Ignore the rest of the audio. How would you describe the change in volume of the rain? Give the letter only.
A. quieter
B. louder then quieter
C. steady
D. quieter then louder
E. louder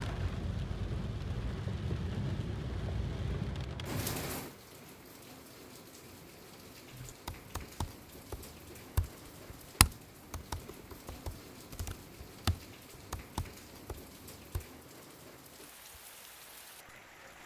A.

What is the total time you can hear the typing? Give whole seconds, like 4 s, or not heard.
8 s.